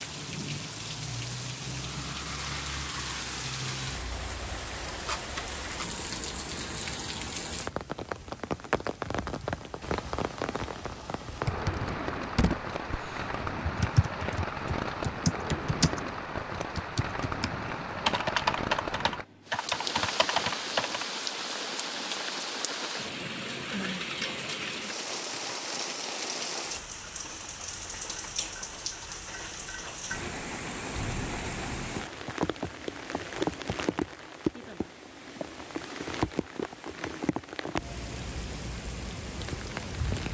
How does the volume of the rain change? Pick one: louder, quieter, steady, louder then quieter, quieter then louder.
steady.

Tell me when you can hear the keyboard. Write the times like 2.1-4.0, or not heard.
11.3-21.1.